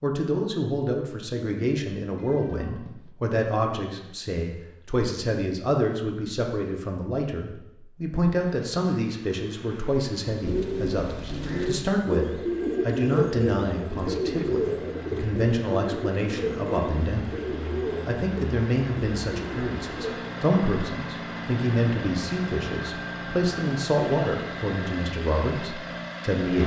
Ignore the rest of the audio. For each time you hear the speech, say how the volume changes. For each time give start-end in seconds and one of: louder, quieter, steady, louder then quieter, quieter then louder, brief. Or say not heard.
0.0-26.6 steady.